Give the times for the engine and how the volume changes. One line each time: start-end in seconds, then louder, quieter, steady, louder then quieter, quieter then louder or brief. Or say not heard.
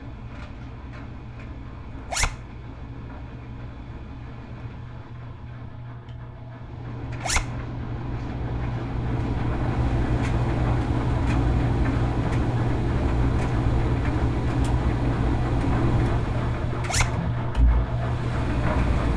0.0-19.1 louder.